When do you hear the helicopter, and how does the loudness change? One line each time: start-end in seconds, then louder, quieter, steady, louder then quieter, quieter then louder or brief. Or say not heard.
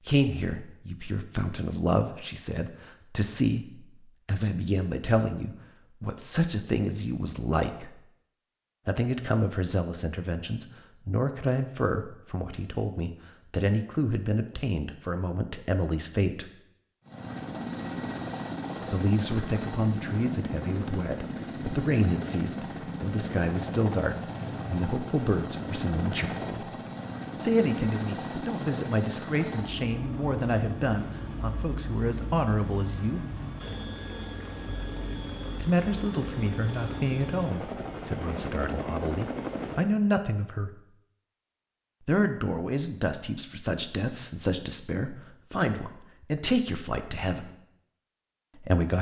17.1-40.0 steady.